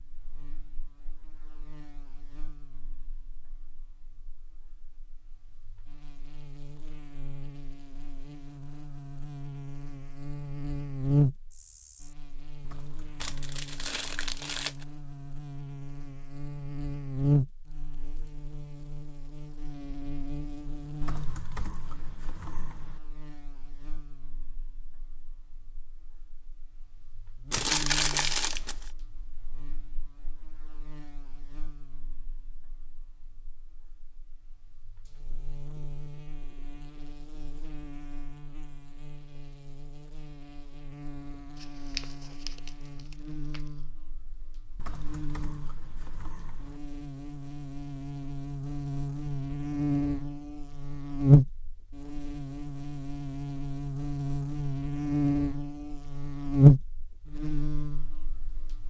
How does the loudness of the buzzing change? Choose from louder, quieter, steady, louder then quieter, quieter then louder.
quieter then louder.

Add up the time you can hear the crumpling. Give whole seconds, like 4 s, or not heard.
5 s.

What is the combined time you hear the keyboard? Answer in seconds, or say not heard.
6 s.